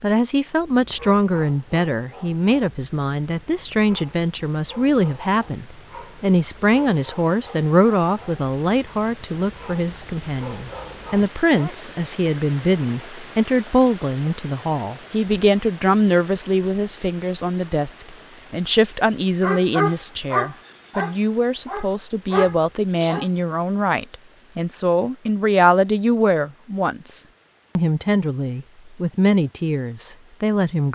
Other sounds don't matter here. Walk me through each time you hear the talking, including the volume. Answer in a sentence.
You can hear the talking from 0.0 to 30.9 s, at a steady volume.